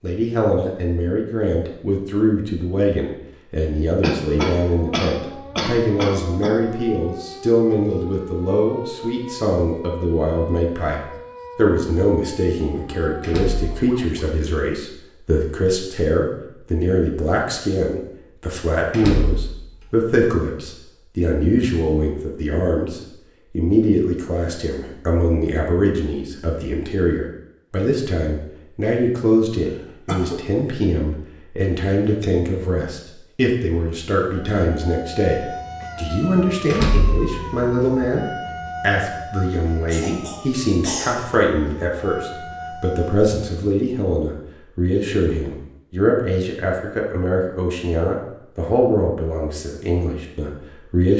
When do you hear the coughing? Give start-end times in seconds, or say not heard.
4.0-6.5, 29.7-30.4, 39.9-41.5.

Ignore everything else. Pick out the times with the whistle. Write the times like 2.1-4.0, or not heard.
not heard.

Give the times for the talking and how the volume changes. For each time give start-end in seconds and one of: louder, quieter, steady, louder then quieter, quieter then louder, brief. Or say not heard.
0.0-51.1 steady.